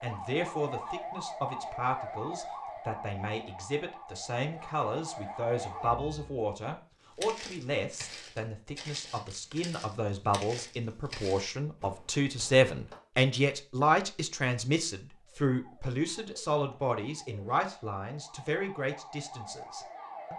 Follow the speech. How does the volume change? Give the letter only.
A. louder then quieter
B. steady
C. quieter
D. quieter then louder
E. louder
A.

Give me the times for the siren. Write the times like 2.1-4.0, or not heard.
0.0-6.5, 15.1-20.3.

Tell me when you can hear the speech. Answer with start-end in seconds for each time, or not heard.
0.0-20.3.